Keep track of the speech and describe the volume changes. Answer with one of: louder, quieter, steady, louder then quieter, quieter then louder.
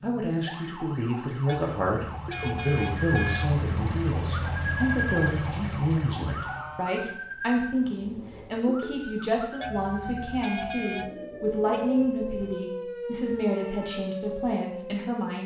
steady.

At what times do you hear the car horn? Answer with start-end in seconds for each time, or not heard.
1.4-3.6, 9.6-11.1.